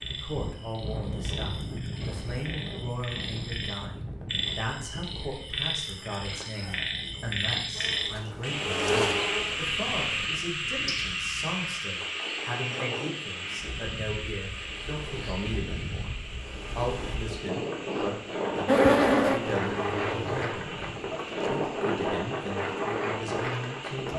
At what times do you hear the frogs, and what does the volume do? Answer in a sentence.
You can hear the frogs from 0.0 to 24.1 s, getting louder then quieter.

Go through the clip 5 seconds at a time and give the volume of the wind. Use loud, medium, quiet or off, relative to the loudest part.
medium, quiet, quiet, loud, loud.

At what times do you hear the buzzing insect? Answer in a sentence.
The buzzing insect can be heard from 7.7 to 10.3 s and from 18.6 to 20.4 s.